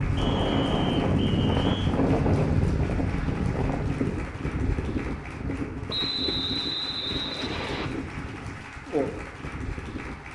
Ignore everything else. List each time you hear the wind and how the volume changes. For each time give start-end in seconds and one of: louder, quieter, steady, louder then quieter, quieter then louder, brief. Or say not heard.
0.0-10.3 quieter.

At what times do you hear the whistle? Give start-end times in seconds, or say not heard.
0.1-1.9, 5.8-7.9.